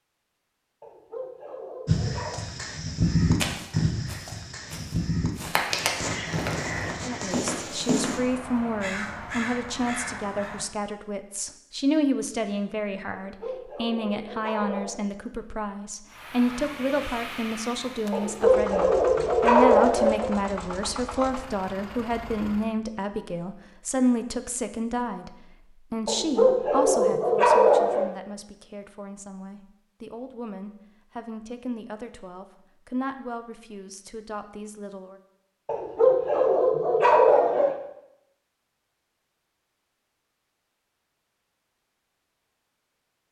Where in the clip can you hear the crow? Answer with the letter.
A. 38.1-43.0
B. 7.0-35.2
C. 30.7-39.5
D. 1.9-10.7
D.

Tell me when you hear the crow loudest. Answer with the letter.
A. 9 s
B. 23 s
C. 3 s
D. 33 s
C.